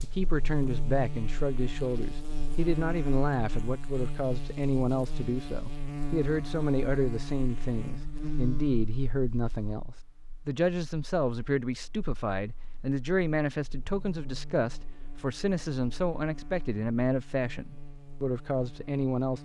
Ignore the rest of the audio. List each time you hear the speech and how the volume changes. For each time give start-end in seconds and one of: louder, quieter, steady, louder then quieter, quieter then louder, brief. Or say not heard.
0.0-19.4 steady.